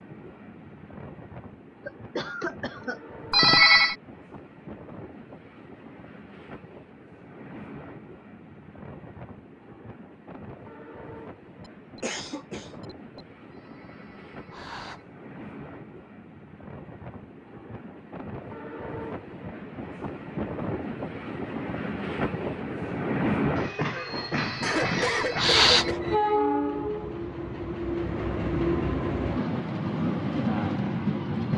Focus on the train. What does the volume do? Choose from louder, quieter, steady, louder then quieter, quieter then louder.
louder.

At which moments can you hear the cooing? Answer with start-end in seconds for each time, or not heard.
not heard.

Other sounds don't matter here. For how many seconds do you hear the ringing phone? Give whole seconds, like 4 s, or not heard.
4 s.